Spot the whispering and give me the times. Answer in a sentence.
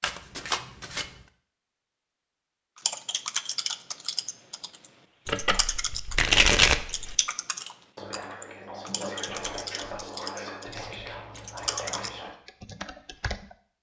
The whispering can be heard from 7.6 to 12.3 s.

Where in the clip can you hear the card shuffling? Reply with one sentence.
You can hear the card shuffling from 0.0 to 1.1 s, from 5.2 to 7.2 s and from 10.7 to 12.2 s.